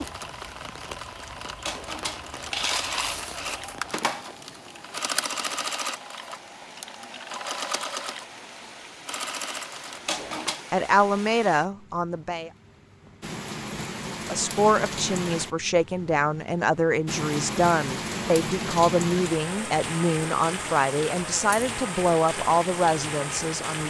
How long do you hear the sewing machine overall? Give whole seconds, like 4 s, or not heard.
10 s.